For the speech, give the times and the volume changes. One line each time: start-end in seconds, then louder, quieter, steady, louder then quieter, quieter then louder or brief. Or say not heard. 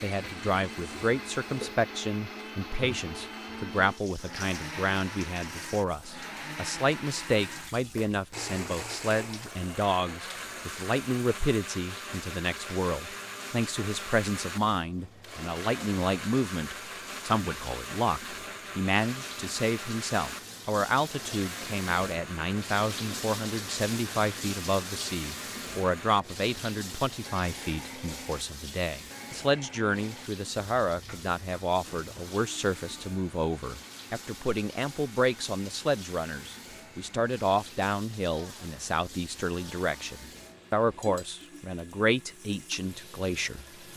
0.0-43.9 steady.